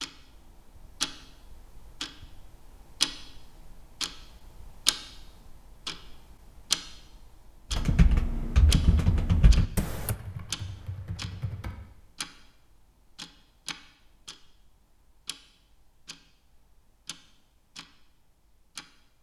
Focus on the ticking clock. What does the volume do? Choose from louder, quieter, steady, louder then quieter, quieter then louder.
quieter.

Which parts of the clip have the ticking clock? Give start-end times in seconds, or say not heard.
0.0-19.1.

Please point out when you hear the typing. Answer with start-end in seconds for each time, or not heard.
7.7-11.8.